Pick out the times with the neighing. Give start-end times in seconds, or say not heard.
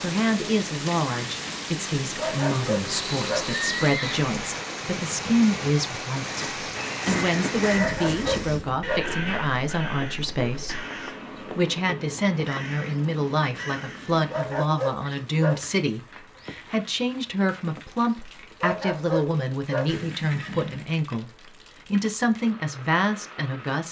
2.9-4.2, 8.8-10.8, 19.9-20.9.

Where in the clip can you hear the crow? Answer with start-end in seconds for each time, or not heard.
6.2-14.3.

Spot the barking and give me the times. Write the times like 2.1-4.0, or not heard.
2.1-3.5, 7.8-9.1, 14.3-15.7, 18.6-19.9.